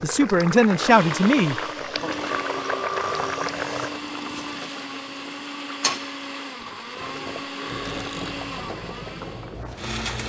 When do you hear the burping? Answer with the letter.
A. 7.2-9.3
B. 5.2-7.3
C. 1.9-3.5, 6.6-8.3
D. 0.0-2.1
C.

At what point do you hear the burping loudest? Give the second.
3 s.